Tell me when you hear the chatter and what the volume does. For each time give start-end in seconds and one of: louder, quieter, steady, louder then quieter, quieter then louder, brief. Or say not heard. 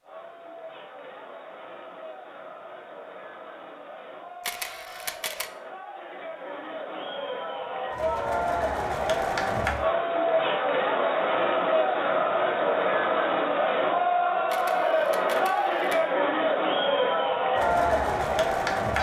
0.0-18.9 louder.